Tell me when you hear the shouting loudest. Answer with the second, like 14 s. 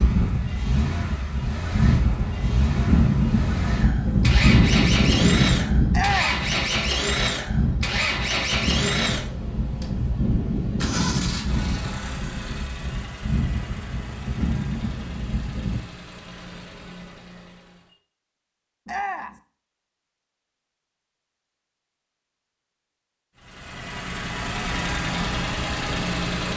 6 s.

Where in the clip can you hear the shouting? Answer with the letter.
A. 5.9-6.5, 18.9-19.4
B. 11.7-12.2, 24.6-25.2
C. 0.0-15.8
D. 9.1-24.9
A.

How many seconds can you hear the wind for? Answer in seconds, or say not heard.
16 s.